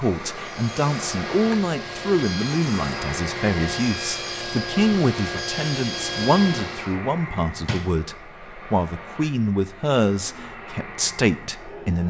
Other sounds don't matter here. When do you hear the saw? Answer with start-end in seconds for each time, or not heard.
0.3-7.0.